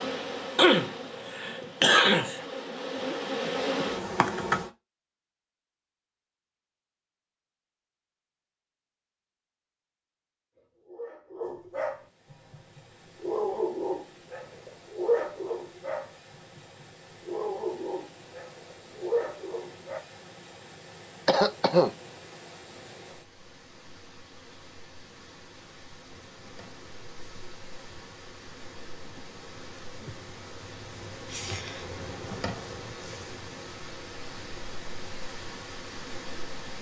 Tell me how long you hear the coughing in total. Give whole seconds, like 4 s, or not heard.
3 s.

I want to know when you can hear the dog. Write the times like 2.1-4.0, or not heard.
10.6-20.0.